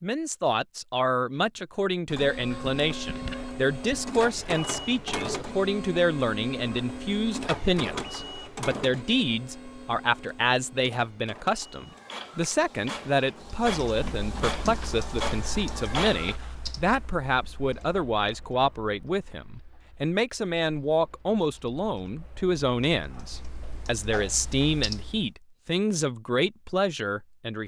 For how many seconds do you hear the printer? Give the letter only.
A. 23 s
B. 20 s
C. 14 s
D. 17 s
C.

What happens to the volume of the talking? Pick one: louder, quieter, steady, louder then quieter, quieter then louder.
steady.